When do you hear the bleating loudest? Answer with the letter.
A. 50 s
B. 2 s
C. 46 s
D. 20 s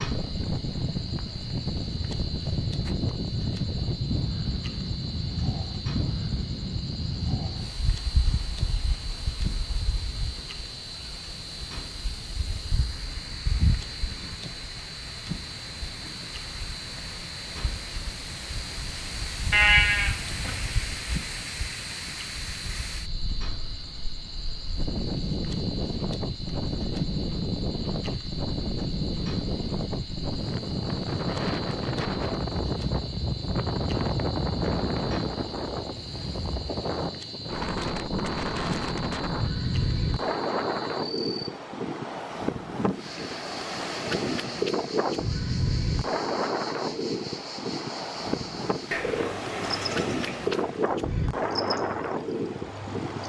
D.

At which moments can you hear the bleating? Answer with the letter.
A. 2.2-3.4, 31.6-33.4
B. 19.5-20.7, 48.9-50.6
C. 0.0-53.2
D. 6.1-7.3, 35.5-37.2
B.